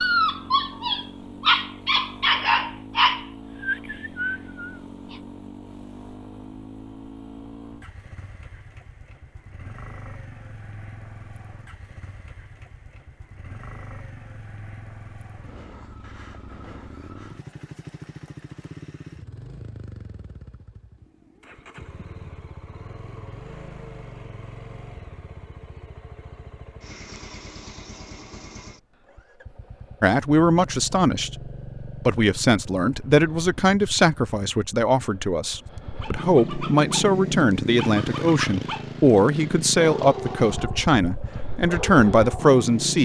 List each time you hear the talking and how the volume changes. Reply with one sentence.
The talking can be heard from 30.0 to 43.0 s, at a steady volume.